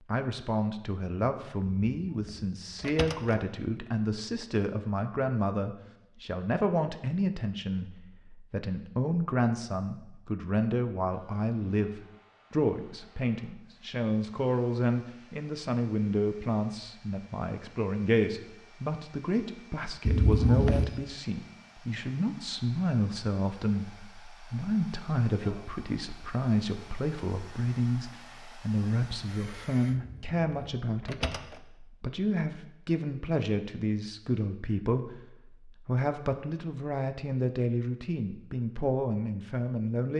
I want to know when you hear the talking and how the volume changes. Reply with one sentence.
You can hear the talking from 0.1 to 40.1 s, at a steady volume.